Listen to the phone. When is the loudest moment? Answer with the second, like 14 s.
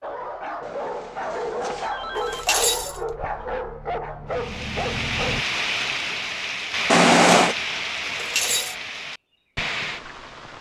7 s.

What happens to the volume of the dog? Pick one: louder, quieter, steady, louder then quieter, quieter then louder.
steady.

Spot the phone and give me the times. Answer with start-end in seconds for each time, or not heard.
0.6-2.5, 6.8-7.5.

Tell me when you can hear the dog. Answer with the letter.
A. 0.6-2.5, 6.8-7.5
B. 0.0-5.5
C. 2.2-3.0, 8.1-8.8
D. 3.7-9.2
B.